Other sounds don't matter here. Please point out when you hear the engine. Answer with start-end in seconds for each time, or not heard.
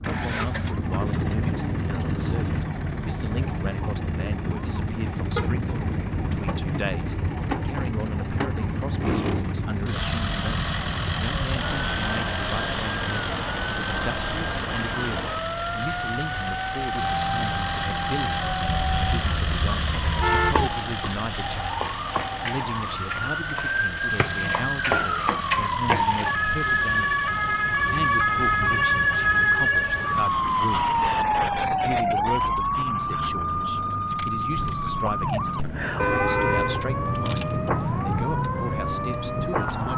0.0-39.9.